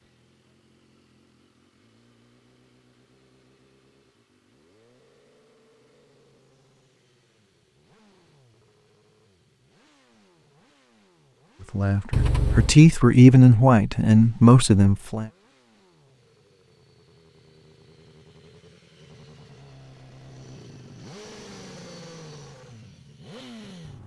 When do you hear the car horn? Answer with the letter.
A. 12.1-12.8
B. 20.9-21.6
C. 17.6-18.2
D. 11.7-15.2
A.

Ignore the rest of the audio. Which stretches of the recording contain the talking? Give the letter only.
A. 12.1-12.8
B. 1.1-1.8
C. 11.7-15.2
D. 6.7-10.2
C.